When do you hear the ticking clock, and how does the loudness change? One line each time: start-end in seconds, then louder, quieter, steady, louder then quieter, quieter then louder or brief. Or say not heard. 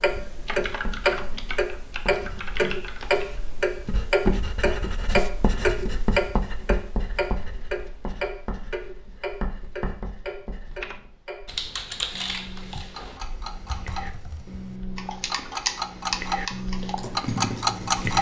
0.0-18.1 quieter then louder.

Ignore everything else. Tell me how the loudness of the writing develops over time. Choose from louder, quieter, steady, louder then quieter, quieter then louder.
louder then quieter.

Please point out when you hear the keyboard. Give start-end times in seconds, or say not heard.
0.0-3.5, 10.8-18.1.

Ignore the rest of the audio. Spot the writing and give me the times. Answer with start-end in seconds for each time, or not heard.
0.4-10.9.